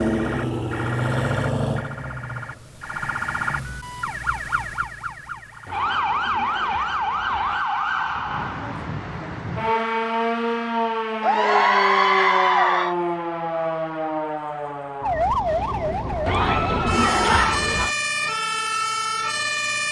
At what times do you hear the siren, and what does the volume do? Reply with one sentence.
The siren can be heard from 0.0 to 19.8 s, at a steady volume.